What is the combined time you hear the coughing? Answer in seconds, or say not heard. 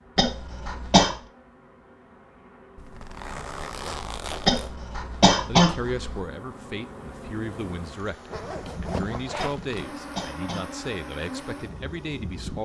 4 s.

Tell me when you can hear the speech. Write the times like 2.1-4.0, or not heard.
5.5-12.6.